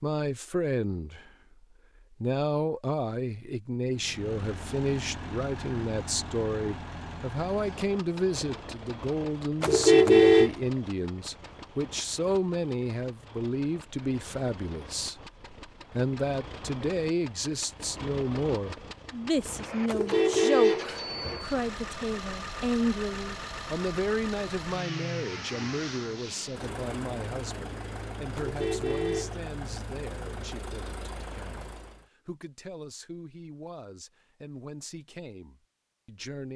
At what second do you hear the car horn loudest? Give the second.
10 s.